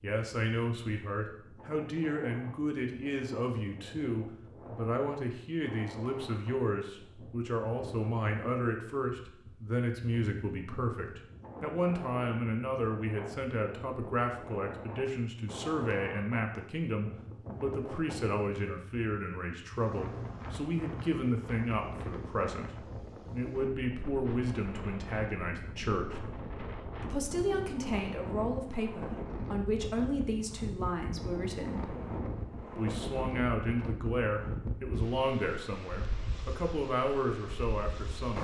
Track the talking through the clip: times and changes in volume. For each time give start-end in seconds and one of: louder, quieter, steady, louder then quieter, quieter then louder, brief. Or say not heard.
0.0-26.2 steady
27.0-31.9 steady
32.8-38.3 steady.